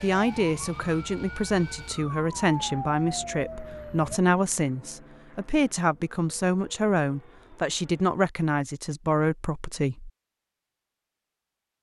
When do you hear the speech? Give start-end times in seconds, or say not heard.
0.0-10.1.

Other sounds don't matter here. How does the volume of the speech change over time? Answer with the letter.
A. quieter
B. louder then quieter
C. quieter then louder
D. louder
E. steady
E.